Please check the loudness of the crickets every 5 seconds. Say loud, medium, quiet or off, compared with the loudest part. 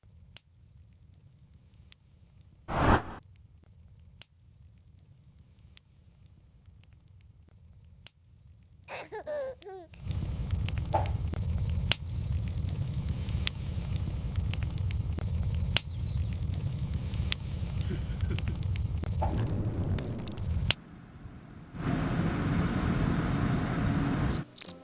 off, off, quiet, quiet, loud.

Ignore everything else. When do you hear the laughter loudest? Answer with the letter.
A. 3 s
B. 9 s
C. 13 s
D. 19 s
B.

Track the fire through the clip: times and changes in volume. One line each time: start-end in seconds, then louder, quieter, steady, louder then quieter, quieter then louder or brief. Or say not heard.
0.0-20.8 louder.